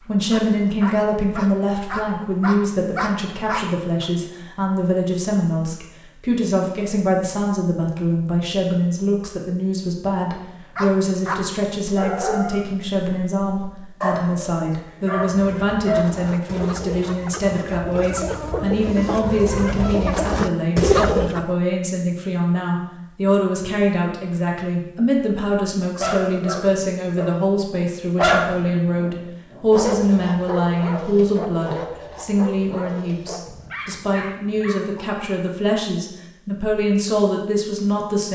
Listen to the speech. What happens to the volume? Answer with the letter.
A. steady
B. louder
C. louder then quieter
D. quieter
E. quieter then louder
A.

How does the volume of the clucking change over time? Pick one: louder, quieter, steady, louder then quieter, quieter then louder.
louder.